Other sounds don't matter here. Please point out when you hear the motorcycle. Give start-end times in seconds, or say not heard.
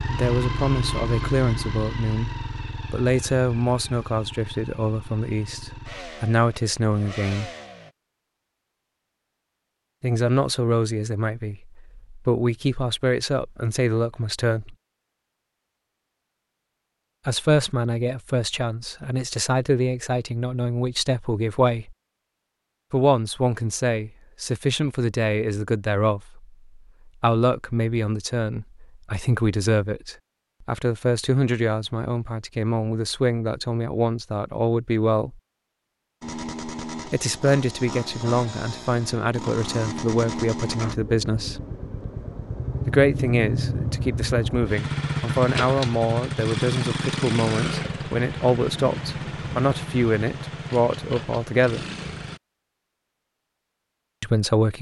0.0-8.0, 36.2-52.4.